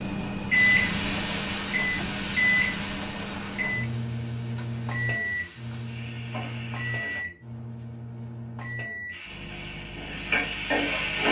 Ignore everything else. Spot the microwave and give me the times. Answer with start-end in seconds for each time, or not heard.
0.0-11.2.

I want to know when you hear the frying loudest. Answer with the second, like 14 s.
11 s.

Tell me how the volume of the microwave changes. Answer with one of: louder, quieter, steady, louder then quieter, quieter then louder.
quieter.